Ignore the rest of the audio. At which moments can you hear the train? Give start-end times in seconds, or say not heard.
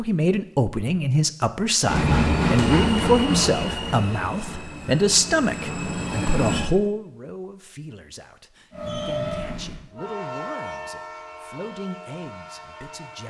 1.9-6.7, 8.7-13.2.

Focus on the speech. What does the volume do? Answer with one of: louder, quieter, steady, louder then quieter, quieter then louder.
quieter.